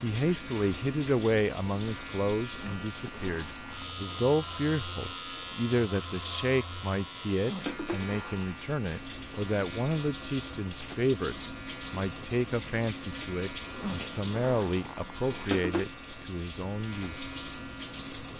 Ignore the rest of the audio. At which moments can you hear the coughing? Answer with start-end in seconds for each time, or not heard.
not heard.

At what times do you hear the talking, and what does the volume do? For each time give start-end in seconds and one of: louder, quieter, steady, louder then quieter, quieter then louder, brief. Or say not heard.
0.0-17.3 steady.